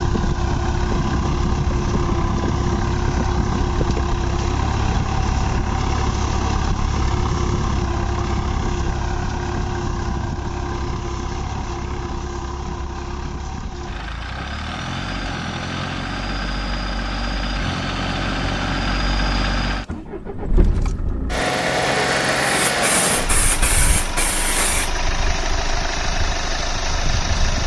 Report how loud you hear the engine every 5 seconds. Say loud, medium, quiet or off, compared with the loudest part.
loud, loud, medium, loud, loud, loud.